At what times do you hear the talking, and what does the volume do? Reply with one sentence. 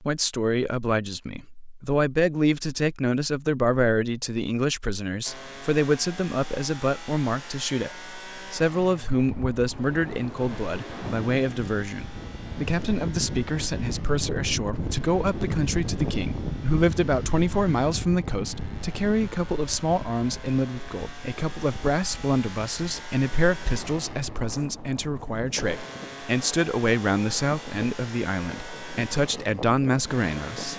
You can hear the talking from 0.0 to 30.7 s, at a steady volume.